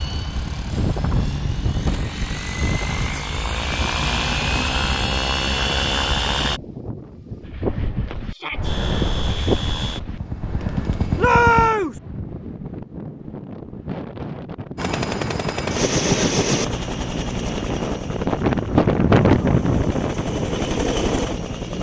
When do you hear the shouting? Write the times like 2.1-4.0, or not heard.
8.2-8.7, 11.2-12.0.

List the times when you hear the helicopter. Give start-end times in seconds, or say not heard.
0.0-6.6, 8.6-11.7, 14.8-21.7.